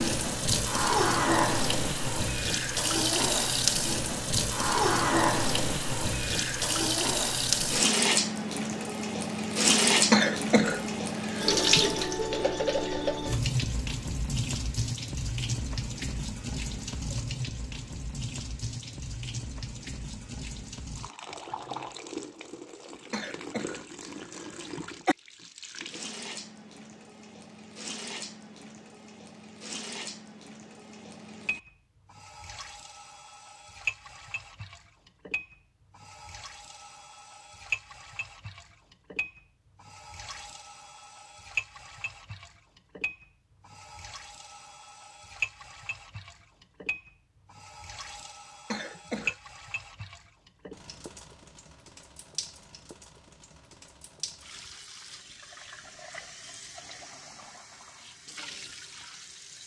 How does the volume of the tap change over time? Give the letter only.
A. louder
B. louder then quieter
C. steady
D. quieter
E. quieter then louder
D.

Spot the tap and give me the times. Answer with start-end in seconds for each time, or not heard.
0.0-59.6.